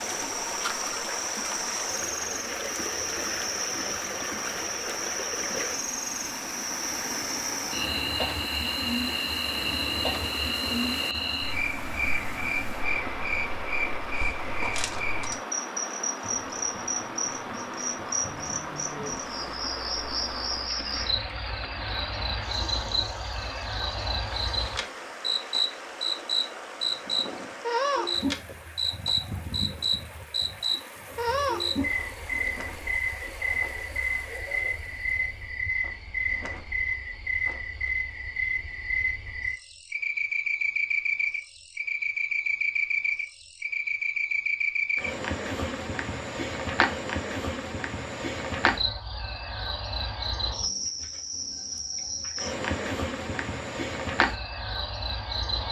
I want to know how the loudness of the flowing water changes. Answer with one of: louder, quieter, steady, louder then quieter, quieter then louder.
quieter.